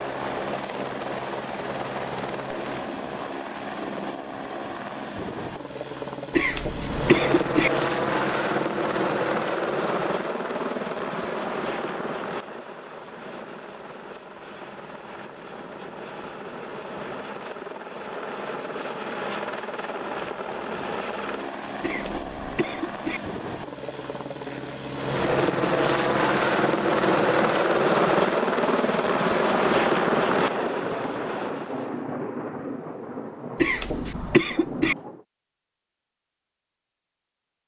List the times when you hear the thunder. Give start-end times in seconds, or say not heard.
30.3-35.2.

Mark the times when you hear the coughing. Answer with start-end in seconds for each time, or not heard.
6.3-7.7, 21.8-23.2, 33.6-35.0.